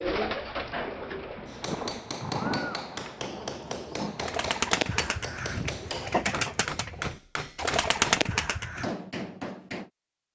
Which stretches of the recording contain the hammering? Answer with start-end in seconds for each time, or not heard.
1.4-9.9.